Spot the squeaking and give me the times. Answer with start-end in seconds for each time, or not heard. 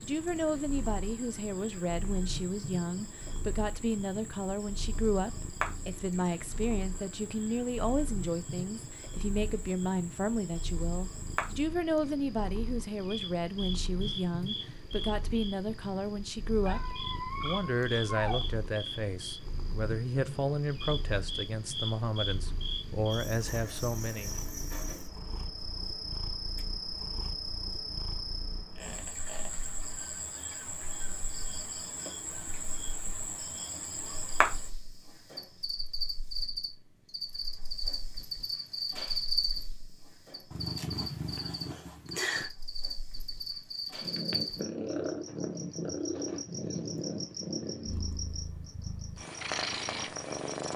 16.6-18.4, 28.8-29.5.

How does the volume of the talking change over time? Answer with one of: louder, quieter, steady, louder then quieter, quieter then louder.
steady.